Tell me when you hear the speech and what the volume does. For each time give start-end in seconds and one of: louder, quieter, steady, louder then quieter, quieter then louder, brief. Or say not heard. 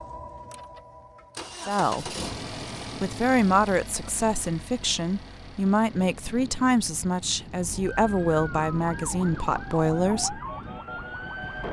1.6-2.1 brief
3.0-10.4 steady.